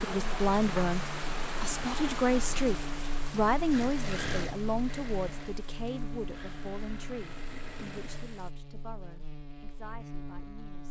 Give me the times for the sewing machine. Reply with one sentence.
The sewing machine can be heard from 3.6 to 8.4 s.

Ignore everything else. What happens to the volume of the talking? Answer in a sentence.
The volume of the talking goes down.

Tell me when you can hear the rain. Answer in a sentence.
The rain can be heard from 0.0 to 8.6 s.